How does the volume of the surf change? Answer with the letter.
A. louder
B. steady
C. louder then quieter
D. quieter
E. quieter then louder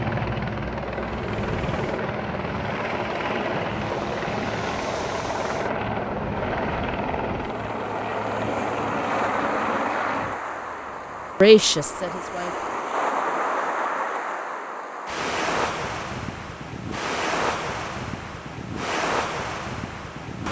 A.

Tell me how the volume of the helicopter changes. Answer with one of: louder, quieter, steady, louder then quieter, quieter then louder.
quieter.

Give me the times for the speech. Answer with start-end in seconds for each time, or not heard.
11.4-12.6.